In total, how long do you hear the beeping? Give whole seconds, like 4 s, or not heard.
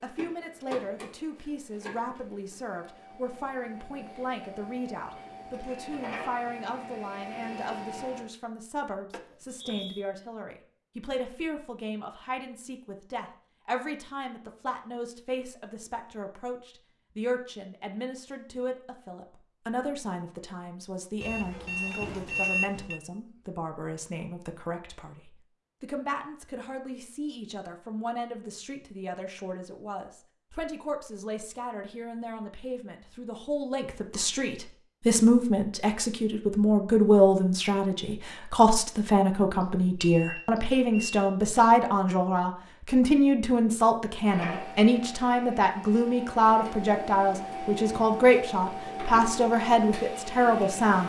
4 s.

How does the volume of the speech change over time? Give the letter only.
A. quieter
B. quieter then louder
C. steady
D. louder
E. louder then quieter
D.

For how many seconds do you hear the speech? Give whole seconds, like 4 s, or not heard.
51 s.